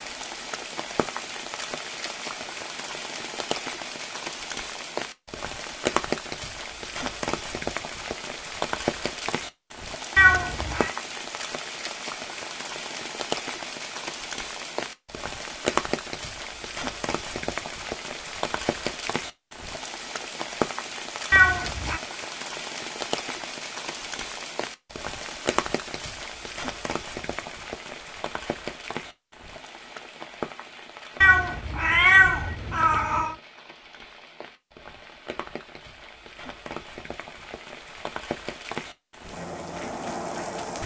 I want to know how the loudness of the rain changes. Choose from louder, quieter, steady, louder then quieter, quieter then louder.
quieter.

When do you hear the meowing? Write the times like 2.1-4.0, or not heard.
10.2-10.9, 21.3-22.0, 31.2-33.4.